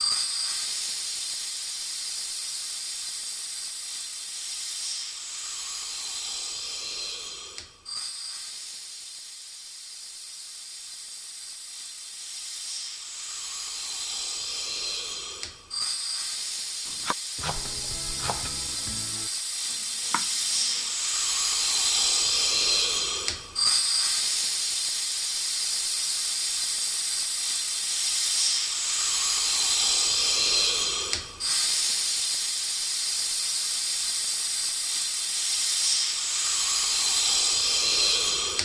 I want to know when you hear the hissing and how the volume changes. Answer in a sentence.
The hissing can be heard from 0.0 to 38.6 s, getting louder.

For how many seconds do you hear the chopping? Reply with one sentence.
You can hear the chopping for 4 seconds altogether.